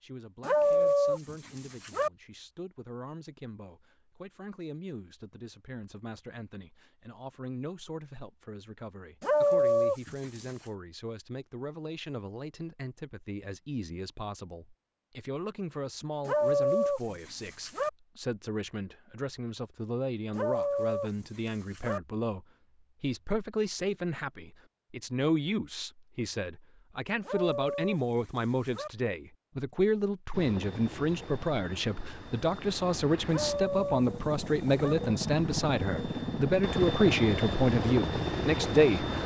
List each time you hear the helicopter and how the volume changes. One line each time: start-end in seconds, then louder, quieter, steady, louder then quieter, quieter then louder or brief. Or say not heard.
30.3-39.2 louder.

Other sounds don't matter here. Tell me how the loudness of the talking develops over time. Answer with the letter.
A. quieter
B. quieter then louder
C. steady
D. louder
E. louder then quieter
D.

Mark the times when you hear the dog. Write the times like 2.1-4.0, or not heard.
0.4-2.1, 9.2-10.6, 16.2-17.9, 20.3-22.0, 27.2-28.9, 33.2-35.0.